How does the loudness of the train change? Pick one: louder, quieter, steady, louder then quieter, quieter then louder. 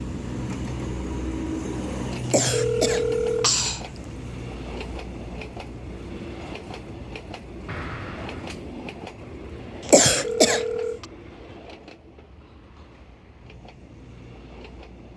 quieter.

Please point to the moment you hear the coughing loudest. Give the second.
10 s.